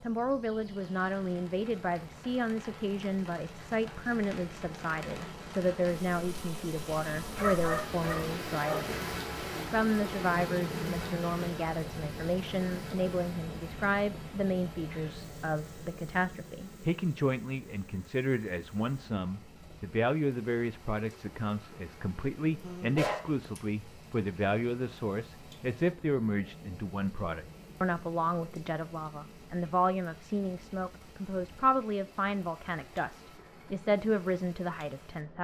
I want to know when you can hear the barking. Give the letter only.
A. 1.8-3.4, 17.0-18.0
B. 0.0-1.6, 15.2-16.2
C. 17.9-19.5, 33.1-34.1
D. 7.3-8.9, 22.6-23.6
D.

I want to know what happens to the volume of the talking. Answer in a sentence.
The volume of the talking stays about the same.